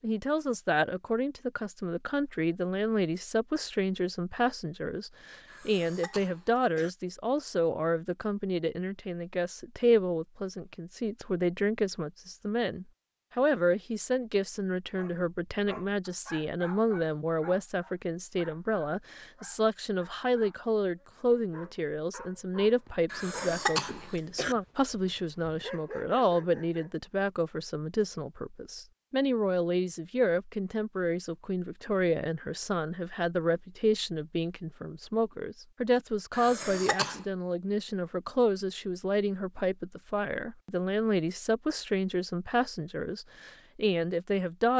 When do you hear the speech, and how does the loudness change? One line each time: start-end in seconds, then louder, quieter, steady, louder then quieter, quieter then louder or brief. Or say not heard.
0.0-44.7 steady.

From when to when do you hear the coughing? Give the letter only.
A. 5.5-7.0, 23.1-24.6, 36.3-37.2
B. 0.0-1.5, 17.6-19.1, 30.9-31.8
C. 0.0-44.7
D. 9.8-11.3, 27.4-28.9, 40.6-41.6
A.